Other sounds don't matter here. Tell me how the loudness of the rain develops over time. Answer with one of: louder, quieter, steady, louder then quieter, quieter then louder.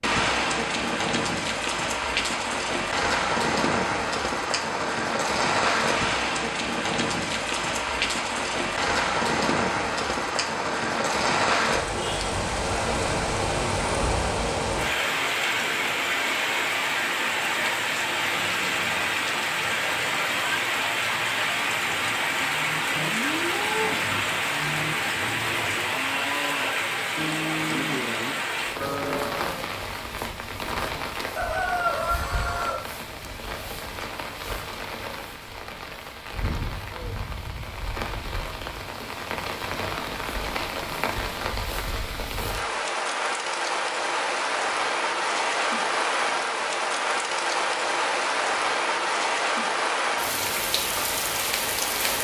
quieter then louder.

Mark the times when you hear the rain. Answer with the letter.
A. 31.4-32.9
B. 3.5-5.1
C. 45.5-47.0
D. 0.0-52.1
D.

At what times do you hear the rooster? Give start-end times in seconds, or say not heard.
31.4-32.9.